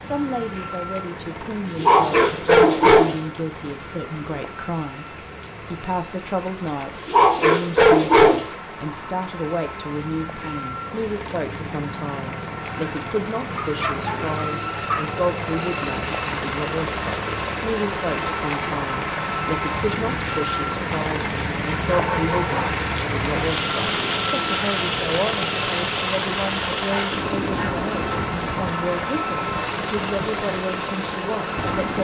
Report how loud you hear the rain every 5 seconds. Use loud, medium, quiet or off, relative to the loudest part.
quiet, quiet, medium, medium, loud, loud, medium.